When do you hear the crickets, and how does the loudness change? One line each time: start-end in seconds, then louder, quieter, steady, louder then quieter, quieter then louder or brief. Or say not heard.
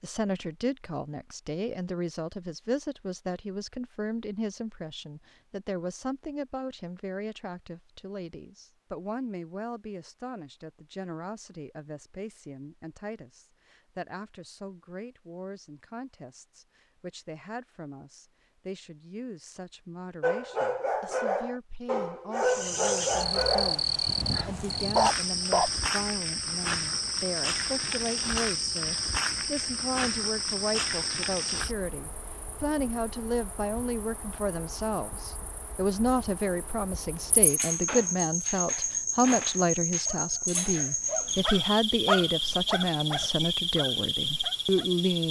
22.4-45.2 quieter then louder.